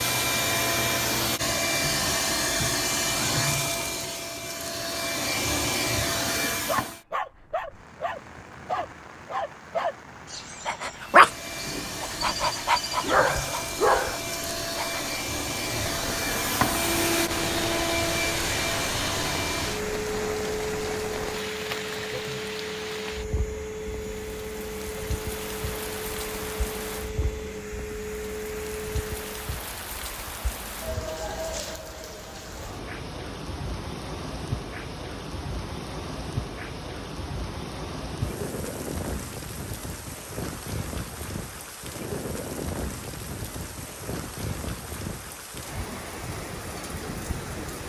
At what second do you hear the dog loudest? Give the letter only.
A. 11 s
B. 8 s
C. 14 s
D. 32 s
A.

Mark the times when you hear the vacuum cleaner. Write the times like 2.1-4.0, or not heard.
0.0-7.0, 10.9-29.5.